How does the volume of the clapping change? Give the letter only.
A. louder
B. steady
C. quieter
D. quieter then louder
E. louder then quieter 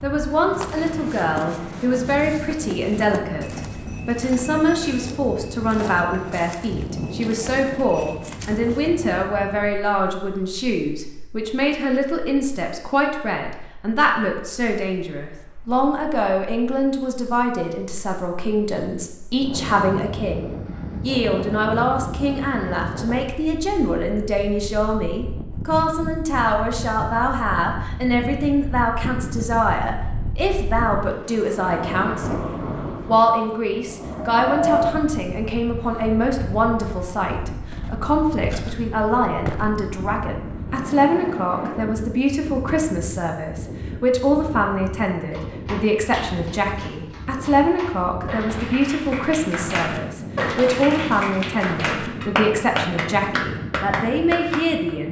A.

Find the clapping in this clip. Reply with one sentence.
The clapping can be heard from 45.3 to 54.9 s.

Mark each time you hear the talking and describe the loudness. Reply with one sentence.
You can hear the talking from 0.0 to 55.0 s, at a steady volume.